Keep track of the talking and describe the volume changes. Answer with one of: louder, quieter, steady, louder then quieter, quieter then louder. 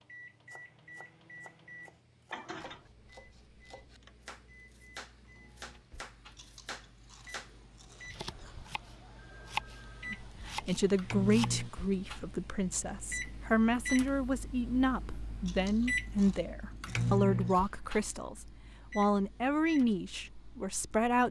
steady.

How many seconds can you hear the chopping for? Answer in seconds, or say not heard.
11 s.